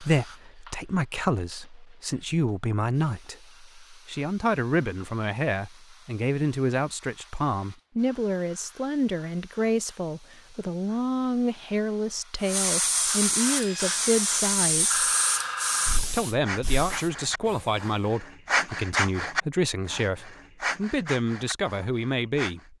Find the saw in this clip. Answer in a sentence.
The saw can be heard from 13.4 to 22.6 s.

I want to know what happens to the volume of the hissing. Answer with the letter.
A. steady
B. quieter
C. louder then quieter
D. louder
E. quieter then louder
D.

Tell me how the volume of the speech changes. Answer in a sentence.
The volume of the speech stays about the same.